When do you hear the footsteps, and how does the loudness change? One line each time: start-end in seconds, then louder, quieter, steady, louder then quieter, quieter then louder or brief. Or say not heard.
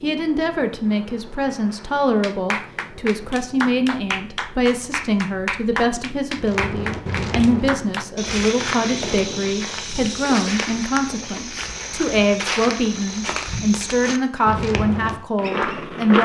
6.3-16.2 steady.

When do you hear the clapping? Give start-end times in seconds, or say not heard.
2.2-8.1.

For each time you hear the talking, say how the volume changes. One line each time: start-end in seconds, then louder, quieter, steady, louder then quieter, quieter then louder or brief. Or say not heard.
0.0-16.2 steady.